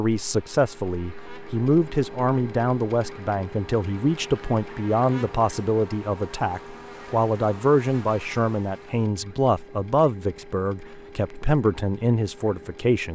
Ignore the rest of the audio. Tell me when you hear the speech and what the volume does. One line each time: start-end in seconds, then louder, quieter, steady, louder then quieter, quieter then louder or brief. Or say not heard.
0.0-13.0 steady.